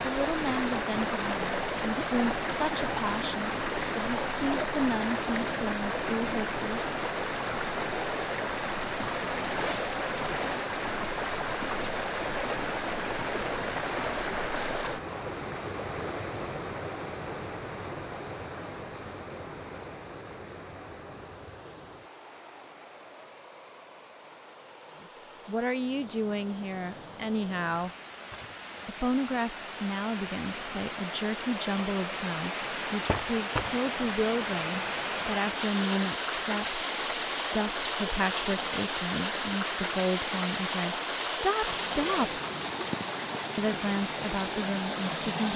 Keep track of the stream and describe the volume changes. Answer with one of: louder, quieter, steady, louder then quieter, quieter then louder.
quieter then louder.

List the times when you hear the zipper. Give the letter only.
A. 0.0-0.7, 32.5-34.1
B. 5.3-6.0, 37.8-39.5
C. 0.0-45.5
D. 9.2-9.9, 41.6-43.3
D.